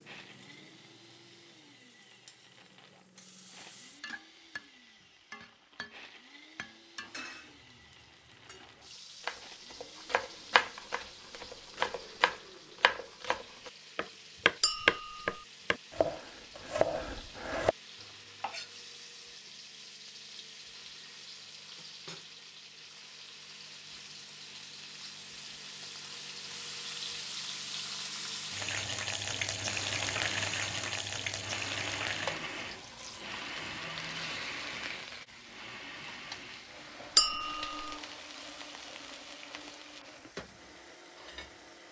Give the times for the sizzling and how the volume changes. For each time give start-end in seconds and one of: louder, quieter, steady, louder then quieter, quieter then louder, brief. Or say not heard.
0.0-41.8 louder then quieter.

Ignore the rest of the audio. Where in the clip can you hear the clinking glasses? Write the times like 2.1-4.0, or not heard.
14.6-15.3, 37.1-38.0.